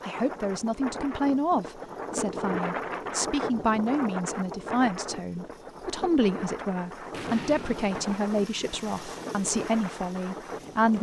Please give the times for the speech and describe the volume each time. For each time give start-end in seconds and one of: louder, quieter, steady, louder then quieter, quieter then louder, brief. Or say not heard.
0.0-10.9 steady.